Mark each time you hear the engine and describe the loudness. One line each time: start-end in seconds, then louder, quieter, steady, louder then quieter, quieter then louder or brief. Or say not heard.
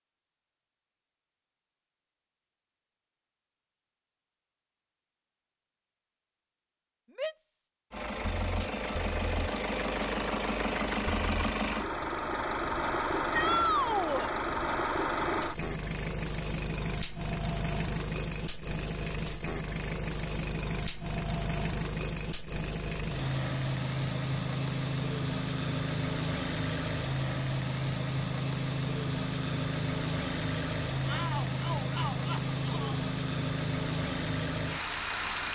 7.9-35.5 steady.